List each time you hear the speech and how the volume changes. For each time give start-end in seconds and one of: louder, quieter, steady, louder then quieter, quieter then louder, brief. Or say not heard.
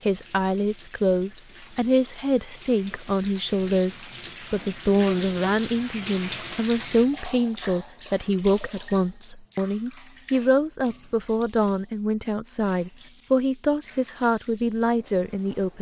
0.1-15.7 steady.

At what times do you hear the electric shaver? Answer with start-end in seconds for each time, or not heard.
not heard.